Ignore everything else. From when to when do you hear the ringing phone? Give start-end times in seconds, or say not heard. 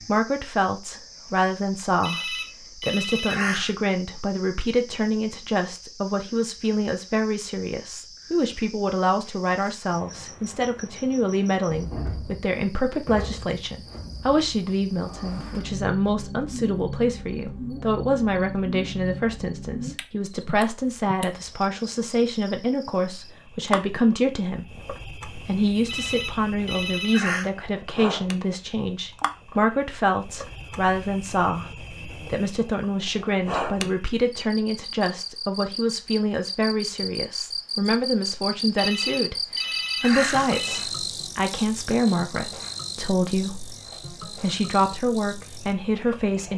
2.0-3.7, 25.9-27.5, 38.8-40.8.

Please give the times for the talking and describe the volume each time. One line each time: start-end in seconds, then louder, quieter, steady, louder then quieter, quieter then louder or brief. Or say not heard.
0.0-46.5 steady.